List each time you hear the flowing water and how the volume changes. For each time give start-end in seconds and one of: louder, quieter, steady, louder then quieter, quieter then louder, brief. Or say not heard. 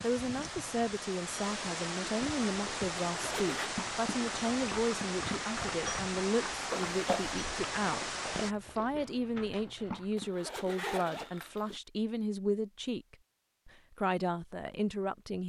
0.0-8.6 steady.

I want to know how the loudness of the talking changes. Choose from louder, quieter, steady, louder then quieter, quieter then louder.
steady.